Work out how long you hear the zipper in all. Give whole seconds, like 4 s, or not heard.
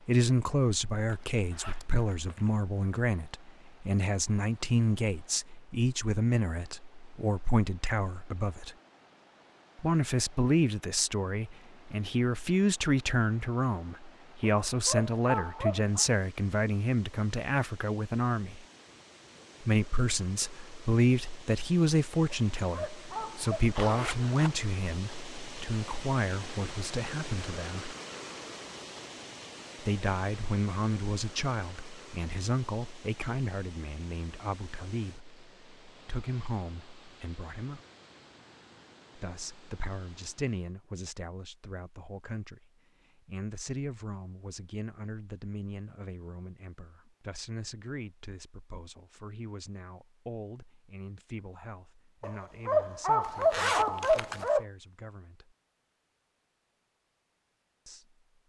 4 s.